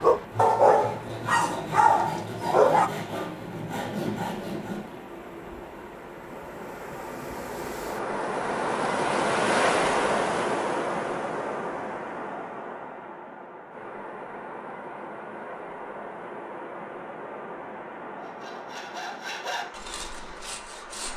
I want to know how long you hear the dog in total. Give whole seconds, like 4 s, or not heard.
3 s.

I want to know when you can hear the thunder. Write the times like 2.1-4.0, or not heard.
3.8-4.9.